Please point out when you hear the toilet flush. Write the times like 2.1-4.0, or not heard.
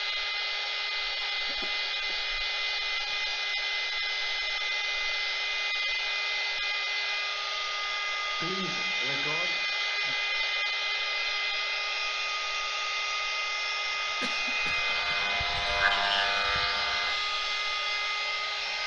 not heard.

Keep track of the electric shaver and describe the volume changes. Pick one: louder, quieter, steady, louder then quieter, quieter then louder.
louder then quieter.